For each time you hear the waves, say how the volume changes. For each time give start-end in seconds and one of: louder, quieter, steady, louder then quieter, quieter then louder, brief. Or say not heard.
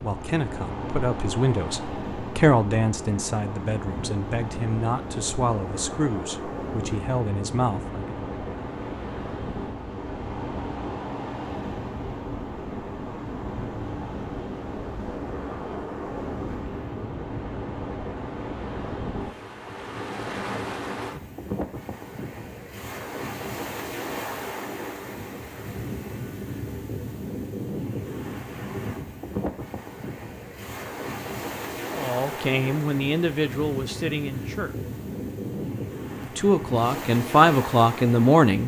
0.0-38.6 steady.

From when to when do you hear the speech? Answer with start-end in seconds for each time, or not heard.
0.0-8.0, 31.9-34.8, 36.2-38.6.